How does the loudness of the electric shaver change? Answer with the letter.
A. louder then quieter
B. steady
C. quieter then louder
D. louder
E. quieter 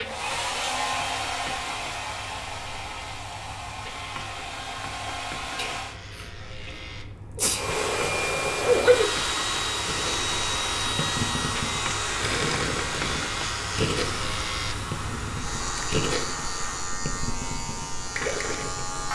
D.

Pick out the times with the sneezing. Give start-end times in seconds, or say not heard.
5.5-7.7.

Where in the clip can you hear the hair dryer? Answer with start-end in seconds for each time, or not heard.
0.0-6.0, 7.5-16.9.